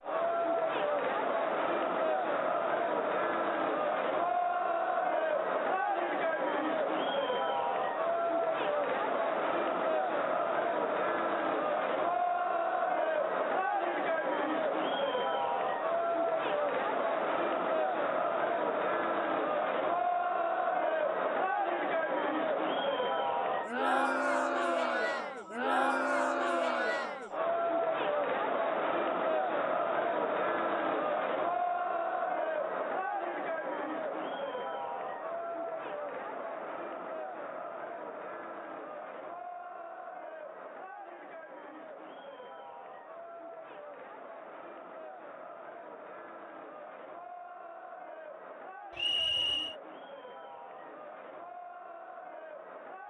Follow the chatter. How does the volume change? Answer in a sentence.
The volume of the chatter goes down.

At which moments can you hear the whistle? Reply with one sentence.
You can hear the whistle from 49.0 to 49.8 s.